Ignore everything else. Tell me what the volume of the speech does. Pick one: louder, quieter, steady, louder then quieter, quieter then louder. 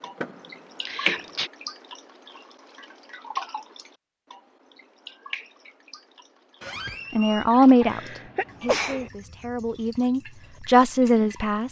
quieter then louder.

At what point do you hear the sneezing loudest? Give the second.
9 s.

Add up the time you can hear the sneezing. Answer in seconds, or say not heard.
2 s.